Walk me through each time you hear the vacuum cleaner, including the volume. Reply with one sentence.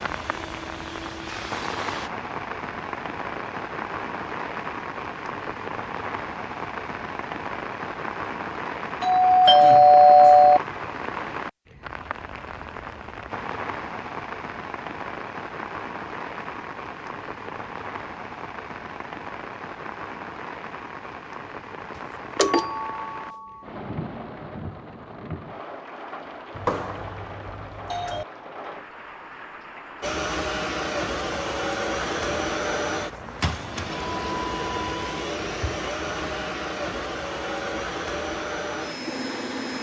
The vacuum cleaner can be heard briefly from 0.0 to 2.1 s; and from 30.0 to 39.7 s, at a steady volume.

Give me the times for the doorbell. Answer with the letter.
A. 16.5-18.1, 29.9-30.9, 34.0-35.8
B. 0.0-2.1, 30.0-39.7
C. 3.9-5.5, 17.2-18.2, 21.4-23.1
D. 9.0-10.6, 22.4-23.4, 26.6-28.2
D.